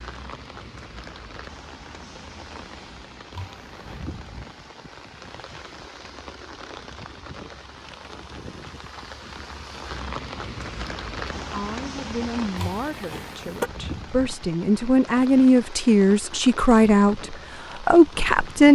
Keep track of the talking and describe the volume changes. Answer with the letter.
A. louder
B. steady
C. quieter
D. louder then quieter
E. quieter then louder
A.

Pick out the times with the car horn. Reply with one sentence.
The car horn can be heard from 3.3 to 4.1 s and from 12.6 to 13.7 s.